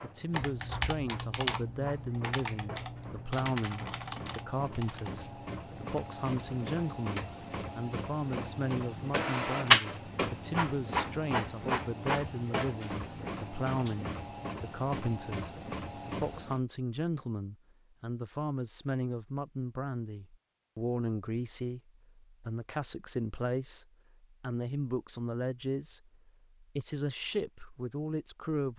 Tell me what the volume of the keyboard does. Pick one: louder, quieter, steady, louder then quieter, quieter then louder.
quieter.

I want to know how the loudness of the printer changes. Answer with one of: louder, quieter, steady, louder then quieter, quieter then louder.
louder then quieter.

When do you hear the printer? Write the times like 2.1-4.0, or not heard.
0.0-16.6.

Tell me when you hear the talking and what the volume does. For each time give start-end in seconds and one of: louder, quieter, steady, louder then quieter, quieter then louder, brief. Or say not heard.
0.0-28.7 steady.